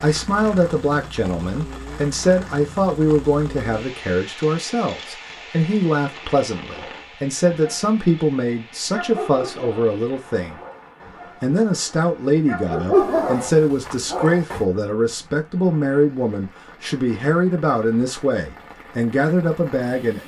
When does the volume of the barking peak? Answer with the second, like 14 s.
13 s.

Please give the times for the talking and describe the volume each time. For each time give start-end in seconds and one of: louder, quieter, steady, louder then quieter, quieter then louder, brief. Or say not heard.
0.0-10.6 steady
11.4-20.2 steady.